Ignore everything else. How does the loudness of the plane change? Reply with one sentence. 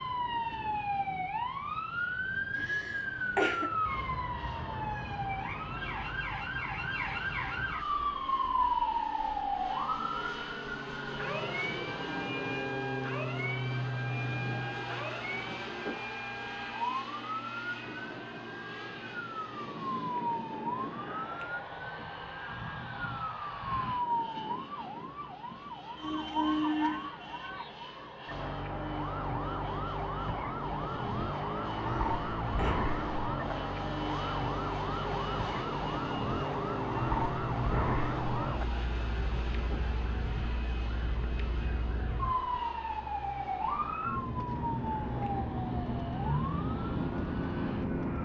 The loudness of the plane goes up, then down.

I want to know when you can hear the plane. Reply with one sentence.
The plane can be heard from 0.0 to 48.1 s.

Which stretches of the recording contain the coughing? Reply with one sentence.
You can hear the coughing from 2.5 to 3.8 s and from 31.8 to 32.8 s.